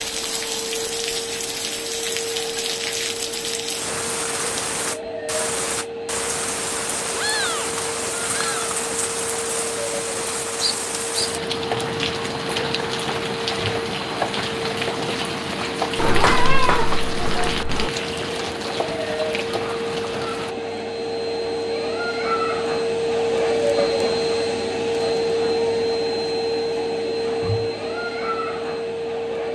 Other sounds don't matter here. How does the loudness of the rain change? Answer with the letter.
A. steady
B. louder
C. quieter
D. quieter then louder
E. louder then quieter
A.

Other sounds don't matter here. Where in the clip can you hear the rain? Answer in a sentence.
The rain can be heard from 0.0 to 20.6 s.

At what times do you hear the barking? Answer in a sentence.
The barking can't be heard in this clip.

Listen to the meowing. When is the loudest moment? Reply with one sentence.
The loudest moment of the meowing is at 16 seconds.